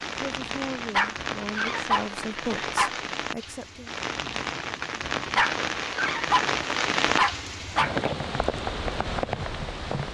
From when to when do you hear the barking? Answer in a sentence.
The barking can be heard from 0.8 to 2.9 s and from 5.2 to 8.0 s.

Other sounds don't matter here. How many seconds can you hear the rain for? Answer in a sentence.
The rain can be heard for 10 seconds in total.